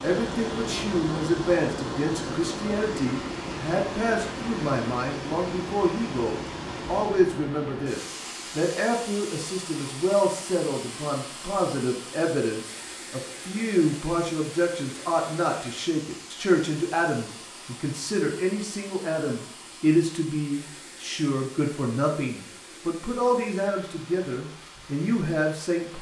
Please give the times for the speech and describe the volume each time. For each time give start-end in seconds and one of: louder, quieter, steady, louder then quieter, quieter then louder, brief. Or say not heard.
0.0-25.9 steady.